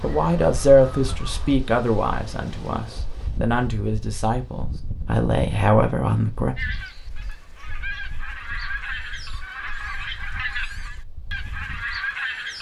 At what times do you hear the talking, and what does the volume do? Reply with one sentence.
The talking can be heard from 0.0 to 6.5 s, getting quieter then louder.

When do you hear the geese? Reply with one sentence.
You can hear the geese from 0.0 to 1.6 s and from 6.5 to 12.5 s.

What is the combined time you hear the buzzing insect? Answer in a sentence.
The buzzing insect can't be heard in this clip.